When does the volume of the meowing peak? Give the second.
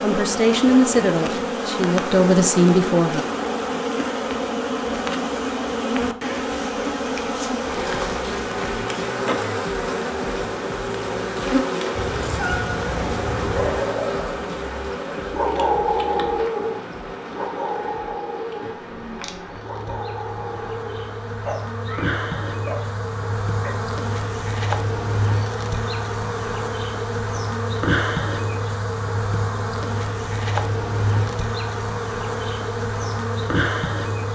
13 s.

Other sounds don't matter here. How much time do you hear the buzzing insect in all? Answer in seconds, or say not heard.
34 s.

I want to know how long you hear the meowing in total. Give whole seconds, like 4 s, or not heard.
2 s.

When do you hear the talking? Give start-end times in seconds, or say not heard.
0.0-3.2.